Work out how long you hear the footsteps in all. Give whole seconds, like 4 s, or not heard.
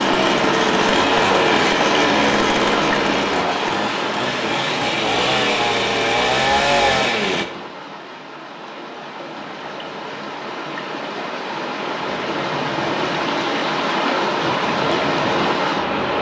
not heard.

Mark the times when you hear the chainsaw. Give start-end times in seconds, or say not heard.
0.0-7.5.